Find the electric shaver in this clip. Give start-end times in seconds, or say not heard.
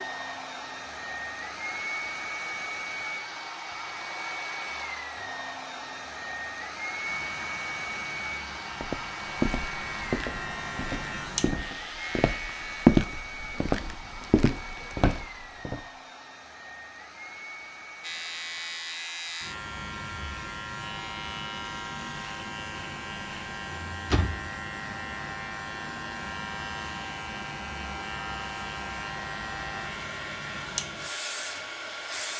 7.0-12.9, 18.0-32.3.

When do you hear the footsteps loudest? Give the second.
13 s.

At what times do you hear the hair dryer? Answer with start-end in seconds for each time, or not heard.
0.0-32.3.